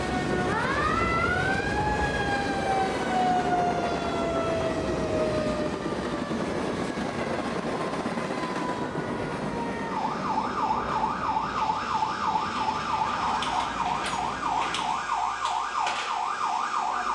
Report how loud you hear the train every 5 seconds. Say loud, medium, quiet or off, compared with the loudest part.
loud, loud, medium, quiet.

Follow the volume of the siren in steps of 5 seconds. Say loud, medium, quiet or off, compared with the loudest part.
loud, medium, loud, loud.